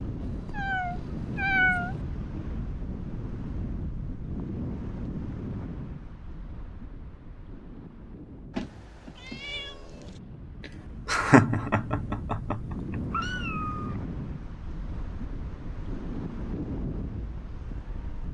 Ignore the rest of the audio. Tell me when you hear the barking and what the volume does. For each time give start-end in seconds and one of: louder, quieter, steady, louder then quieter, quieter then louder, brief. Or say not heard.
not heard.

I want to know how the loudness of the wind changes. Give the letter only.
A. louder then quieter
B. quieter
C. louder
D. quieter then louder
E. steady
D.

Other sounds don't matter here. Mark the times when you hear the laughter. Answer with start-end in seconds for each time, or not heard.
11.1-13.0.